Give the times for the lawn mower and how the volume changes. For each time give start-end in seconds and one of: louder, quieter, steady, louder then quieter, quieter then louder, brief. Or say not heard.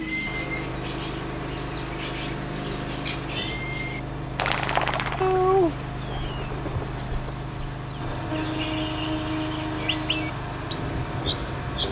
0.0-11.8 steady.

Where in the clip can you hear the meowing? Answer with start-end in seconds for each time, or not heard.
5.2-6.5.